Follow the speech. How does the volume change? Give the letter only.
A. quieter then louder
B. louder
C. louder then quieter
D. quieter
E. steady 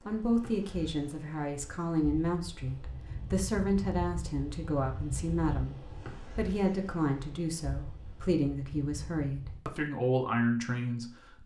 E.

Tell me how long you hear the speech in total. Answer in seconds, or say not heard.
11 s.